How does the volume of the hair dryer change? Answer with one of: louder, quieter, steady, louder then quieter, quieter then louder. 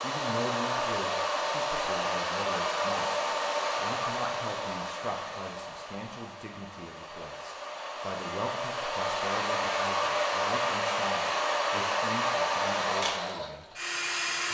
quieter then louder.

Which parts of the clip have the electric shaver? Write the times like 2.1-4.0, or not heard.
not heard.